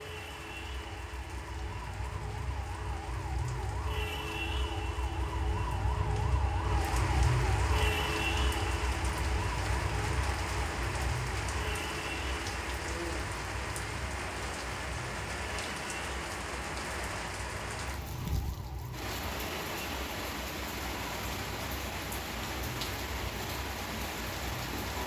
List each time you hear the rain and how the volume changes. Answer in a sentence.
You can hear the rain from 0.0 to 25.0 s, getting louder.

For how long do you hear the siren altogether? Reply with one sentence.
The siren can be heard for 25 seconds in total.